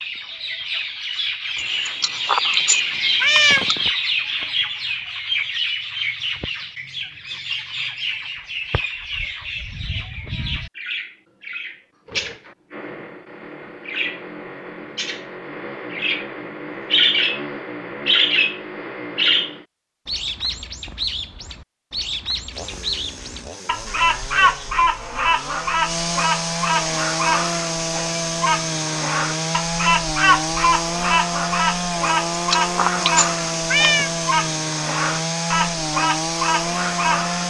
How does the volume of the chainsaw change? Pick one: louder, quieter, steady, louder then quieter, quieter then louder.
louder.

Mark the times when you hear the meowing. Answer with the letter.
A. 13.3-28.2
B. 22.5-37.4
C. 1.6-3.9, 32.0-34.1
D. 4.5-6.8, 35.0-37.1
C.